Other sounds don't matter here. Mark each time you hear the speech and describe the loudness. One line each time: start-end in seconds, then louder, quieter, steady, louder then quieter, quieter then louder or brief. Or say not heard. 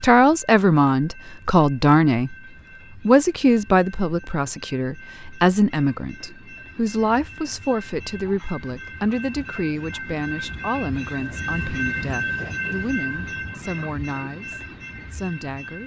0.0-2.4 brief
3.0-15.8 quieter.